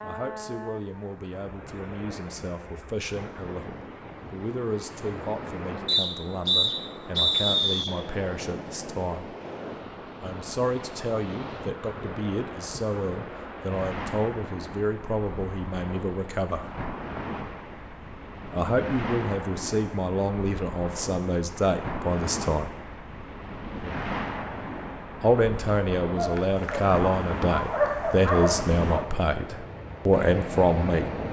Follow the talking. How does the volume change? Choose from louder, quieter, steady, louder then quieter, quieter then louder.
louder.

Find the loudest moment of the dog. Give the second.
28 s.